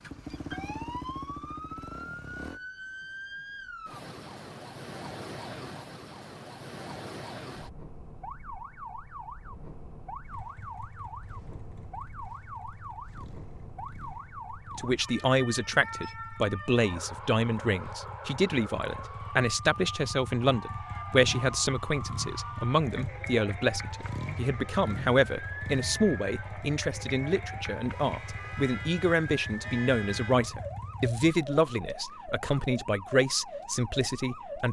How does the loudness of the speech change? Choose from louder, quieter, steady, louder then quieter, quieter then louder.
steady.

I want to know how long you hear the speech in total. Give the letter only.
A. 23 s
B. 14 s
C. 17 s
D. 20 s
D.